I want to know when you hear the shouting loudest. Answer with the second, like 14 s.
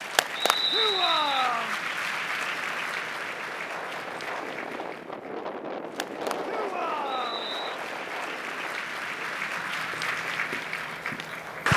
1 s.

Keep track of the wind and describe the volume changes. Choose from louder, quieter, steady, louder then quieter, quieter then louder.
louder then quieter.